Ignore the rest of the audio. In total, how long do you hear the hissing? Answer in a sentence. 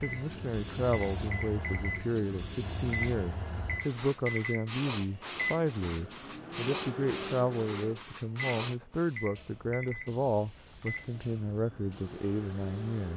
The hissing can be heard for 13 seconds in total.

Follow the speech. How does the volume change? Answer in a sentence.
The loudness of the speech stays about the same.